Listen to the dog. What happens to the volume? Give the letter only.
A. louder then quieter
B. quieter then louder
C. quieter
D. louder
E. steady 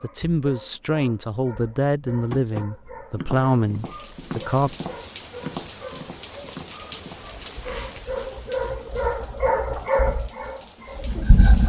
D.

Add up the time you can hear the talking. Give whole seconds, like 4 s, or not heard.
5 s.